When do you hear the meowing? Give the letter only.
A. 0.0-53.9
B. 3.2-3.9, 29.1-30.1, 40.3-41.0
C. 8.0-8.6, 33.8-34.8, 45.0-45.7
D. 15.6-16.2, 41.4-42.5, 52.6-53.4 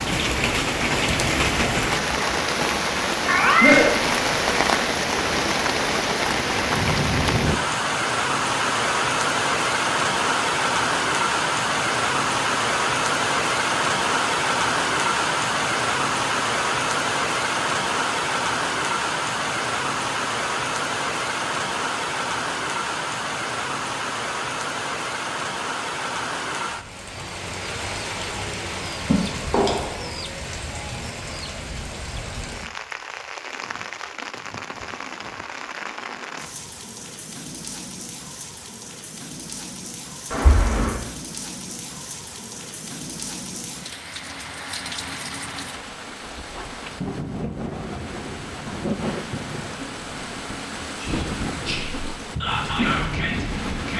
B.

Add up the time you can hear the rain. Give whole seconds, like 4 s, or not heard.
54 s.